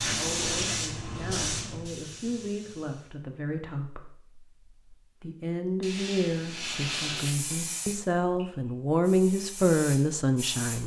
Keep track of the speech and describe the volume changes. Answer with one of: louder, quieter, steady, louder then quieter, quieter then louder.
louder.